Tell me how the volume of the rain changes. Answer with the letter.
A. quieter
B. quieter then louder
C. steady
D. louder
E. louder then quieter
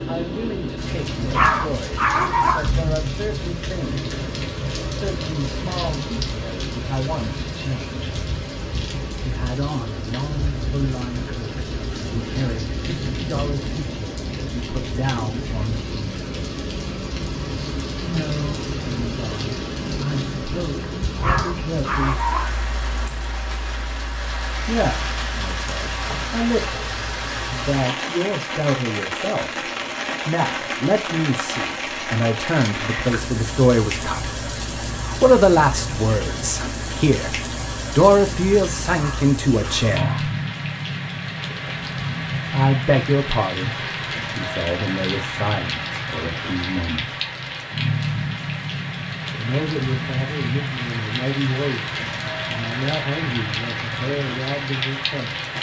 C.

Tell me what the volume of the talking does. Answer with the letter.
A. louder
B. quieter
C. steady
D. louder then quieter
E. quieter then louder
D.